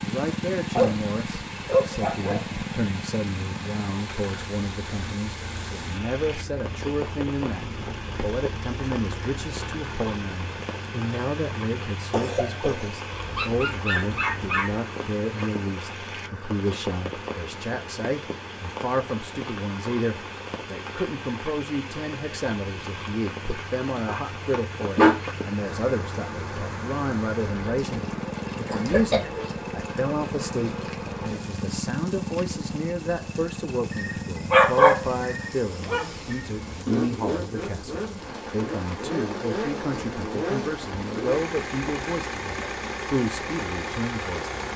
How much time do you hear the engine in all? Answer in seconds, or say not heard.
45 s.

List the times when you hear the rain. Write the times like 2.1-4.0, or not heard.
0.0-44.7.